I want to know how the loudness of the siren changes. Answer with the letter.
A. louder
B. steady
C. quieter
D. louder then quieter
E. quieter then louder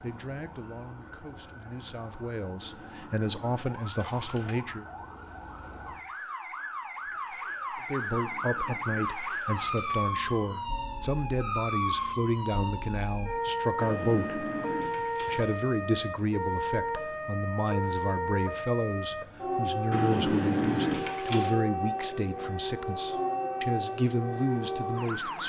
A.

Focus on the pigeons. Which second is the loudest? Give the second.
21 s.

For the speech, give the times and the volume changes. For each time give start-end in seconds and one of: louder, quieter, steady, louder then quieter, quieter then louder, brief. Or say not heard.
0.0-4.8 louder
7.8-14.4 steady
15.2-25.4 steady.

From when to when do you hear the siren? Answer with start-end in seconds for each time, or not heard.
0.0-25.4.